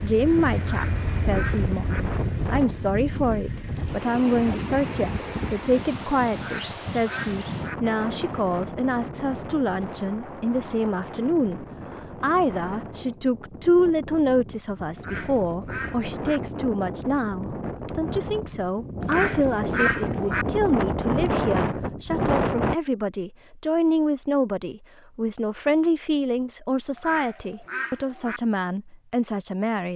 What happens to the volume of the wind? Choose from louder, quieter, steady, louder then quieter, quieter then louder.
quieter then louder.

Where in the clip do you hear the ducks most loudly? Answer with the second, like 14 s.
20 s.